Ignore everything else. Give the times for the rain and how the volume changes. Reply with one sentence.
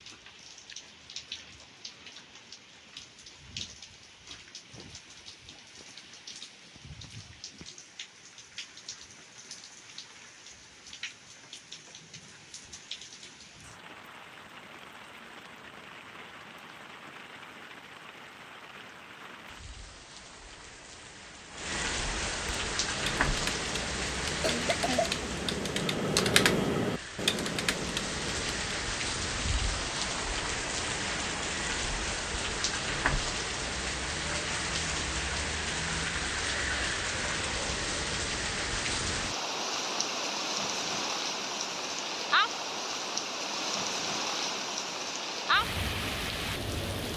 The rain can be heard from 0.0 to 47.1 s, getting louder.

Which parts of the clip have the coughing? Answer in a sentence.
The coughing can be heard from 24.2 to 25.1 s.